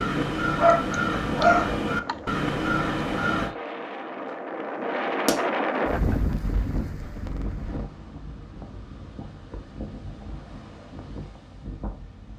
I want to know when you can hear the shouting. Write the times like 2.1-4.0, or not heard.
not heard.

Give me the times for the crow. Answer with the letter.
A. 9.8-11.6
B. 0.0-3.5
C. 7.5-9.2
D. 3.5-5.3
B.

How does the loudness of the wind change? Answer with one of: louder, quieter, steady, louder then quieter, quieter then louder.
louder then quieter.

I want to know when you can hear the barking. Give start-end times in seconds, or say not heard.
0.6-2.3.